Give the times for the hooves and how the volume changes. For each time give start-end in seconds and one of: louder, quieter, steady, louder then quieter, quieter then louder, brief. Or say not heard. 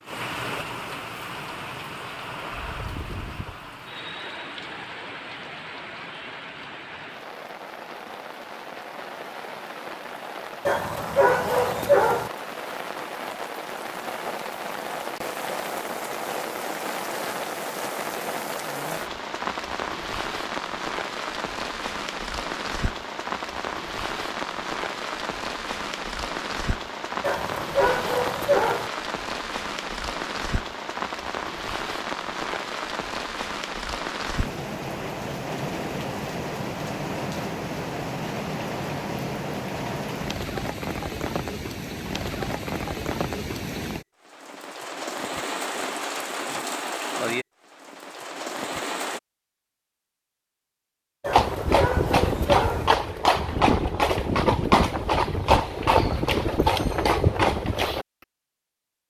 51.2-58.0 steady.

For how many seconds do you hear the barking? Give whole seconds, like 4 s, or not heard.
5 s.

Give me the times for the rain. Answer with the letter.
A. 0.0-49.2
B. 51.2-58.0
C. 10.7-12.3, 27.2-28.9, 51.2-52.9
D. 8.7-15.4
A.